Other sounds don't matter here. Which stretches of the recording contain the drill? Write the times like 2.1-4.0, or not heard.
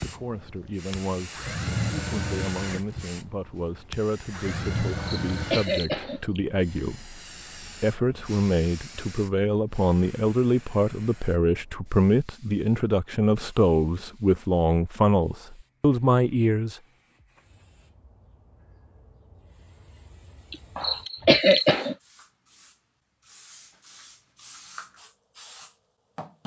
0.0-5.7.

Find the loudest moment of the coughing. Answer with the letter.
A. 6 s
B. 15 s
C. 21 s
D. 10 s
C.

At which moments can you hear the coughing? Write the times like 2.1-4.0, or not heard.
5.0-6.4, 20.5-21.9.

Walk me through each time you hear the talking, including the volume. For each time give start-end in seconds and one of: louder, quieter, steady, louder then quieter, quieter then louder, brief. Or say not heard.
0.0-16.8 louder.